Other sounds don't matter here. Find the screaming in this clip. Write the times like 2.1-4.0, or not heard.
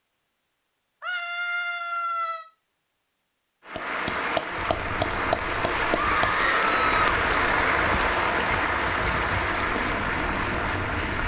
1.0-2.5, 6.0-7.0.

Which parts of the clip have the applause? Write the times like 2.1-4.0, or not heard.
3.6-11.2.